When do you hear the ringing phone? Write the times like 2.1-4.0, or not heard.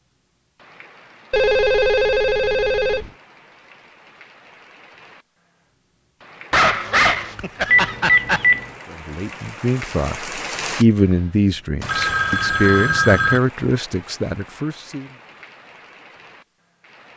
1.3-3.1, 7.7-8.7, 11.8-13.4.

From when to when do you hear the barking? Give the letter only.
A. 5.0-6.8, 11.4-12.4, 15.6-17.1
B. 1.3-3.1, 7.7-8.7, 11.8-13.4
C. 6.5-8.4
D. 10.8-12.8
C.